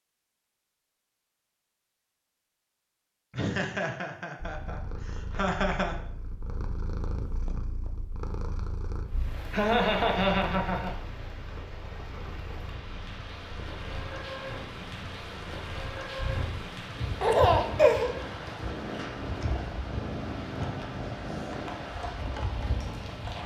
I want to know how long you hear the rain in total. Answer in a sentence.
The rain can be heard for 14 seconds in total.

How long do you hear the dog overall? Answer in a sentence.
The dog can't be heard in this clip.